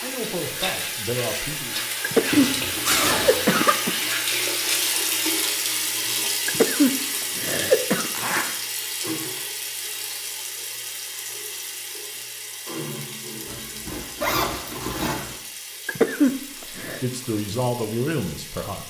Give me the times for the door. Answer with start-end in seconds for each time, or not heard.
not heard.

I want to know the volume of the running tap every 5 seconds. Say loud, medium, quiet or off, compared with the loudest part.
loud, loud, medium, quiet.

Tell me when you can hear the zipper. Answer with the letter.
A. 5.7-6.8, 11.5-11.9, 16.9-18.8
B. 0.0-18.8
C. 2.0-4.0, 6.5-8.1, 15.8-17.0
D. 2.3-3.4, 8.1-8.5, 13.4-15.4
D.